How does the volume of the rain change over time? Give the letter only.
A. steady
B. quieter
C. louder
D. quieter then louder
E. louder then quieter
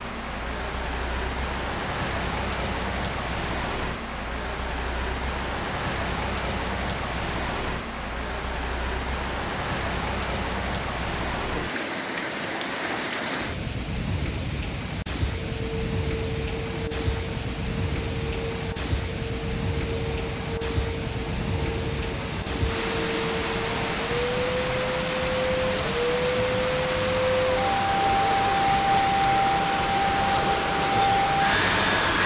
A.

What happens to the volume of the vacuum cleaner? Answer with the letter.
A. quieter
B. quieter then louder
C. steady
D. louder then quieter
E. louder
E.